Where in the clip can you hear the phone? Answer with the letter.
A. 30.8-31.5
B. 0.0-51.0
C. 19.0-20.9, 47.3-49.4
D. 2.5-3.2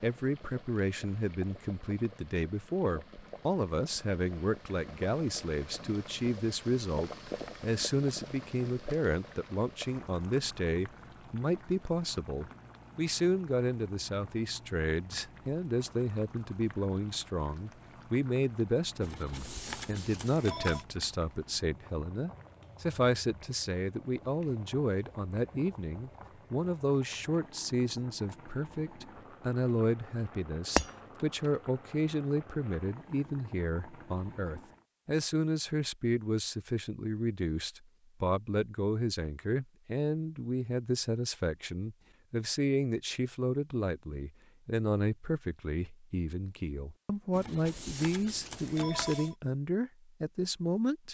C.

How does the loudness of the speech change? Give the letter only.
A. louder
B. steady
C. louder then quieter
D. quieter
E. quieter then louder
B.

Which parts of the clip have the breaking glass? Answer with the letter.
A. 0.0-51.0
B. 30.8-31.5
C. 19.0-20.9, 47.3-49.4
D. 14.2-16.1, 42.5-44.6
B.